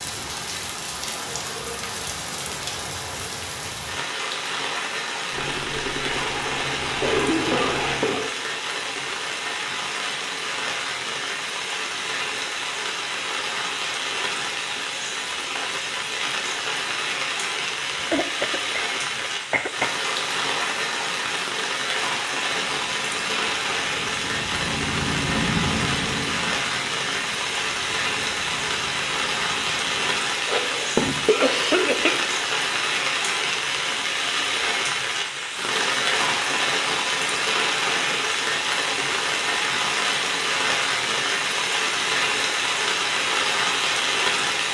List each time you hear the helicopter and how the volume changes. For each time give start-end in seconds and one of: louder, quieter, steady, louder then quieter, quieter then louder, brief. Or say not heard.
5.3-8.2 brief
22.6-30.2 louder then quieter.